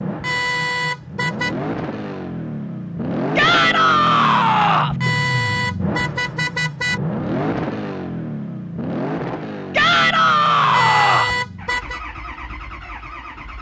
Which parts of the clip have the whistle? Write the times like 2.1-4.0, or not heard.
not heard.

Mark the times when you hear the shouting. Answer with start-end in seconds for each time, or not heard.
3.4-5.0, 9.7-11.3.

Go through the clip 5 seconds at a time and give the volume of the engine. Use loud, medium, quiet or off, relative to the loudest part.
loud, loud, medium.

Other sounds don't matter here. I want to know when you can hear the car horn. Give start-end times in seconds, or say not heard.
0.2-1.6, 5.0-7.0, 10.7-12.0.